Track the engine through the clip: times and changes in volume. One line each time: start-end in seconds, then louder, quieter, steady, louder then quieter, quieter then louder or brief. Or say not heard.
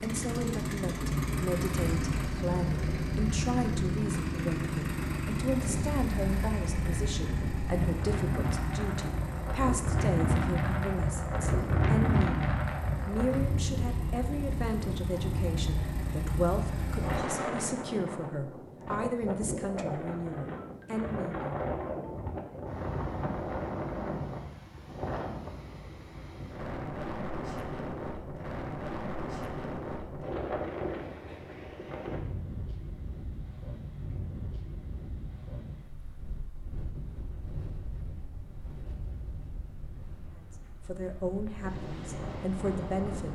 0.0-17.2 quieter then louder.